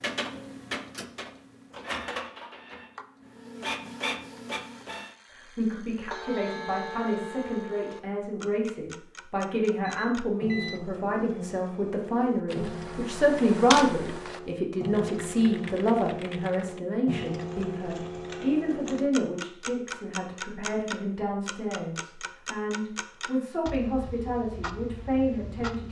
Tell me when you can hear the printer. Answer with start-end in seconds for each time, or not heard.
0.0-5.2.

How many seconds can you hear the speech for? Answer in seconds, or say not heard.
20 s.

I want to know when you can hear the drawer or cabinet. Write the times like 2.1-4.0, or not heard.
not heard.